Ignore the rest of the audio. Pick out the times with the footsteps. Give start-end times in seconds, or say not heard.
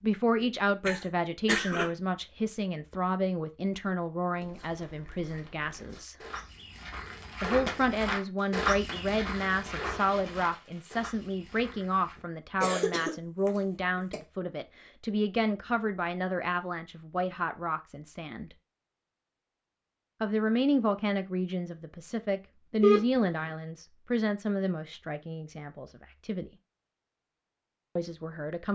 4.3-12.2.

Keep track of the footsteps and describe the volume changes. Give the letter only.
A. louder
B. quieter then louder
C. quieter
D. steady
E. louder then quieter
E.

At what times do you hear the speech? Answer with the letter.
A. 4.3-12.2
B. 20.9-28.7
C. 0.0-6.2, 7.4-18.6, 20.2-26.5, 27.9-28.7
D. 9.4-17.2
C.